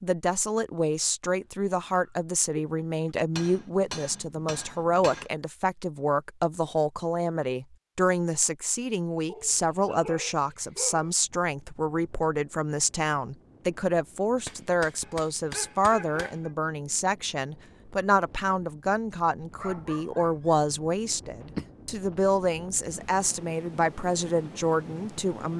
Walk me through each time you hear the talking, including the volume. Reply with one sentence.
The talking can be heard from 0.0 to 25.5 s, at a steady volume.